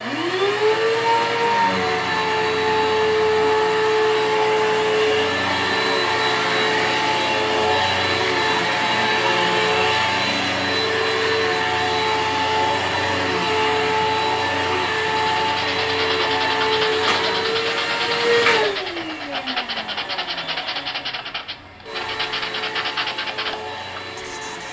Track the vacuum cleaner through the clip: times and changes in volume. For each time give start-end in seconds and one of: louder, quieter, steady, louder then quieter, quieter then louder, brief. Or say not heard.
0.0-24.6 quieter.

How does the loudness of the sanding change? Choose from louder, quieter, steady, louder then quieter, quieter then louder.
steady.